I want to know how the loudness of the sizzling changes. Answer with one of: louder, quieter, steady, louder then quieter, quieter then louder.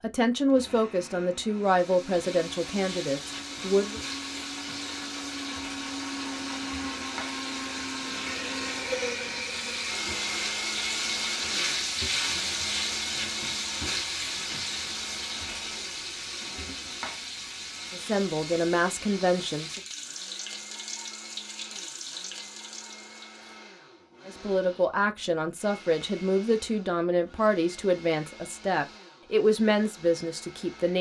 louder then quieter.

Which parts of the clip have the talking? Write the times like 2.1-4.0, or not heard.
0.0-4.0, 17.9-19.8, 24.2-30.9.